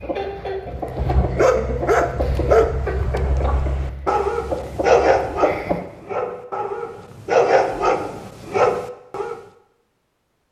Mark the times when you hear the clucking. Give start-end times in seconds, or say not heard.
0.0-5.8.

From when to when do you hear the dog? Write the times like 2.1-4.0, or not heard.
0.7-9.4.